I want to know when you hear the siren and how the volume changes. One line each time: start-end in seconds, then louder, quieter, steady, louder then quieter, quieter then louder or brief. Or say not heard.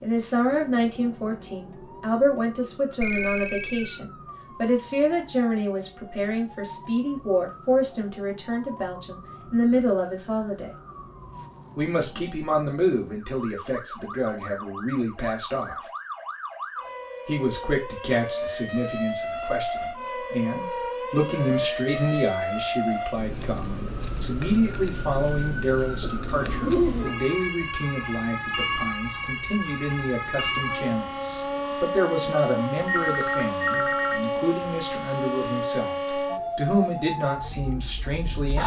0.0-38.6 louder.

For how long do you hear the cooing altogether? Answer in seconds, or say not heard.
2 s.